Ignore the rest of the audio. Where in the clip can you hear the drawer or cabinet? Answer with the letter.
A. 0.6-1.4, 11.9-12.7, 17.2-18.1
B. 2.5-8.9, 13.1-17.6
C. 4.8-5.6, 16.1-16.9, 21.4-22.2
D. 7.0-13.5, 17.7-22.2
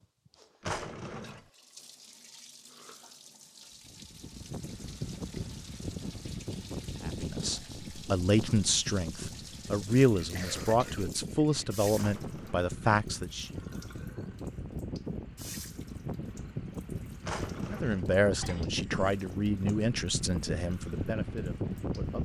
A.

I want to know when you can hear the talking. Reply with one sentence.
You can hear the talking from 7.0 to 13.5 s and from 17.7 to 22.2 s.